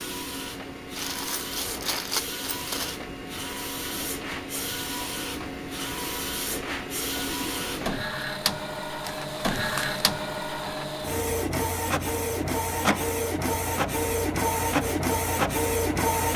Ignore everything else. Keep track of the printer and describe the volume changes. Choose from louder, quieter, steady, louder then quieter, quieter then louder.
louder.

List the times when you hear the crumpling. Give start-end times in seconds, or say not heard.
0.9-3.0, 9.0-10.1.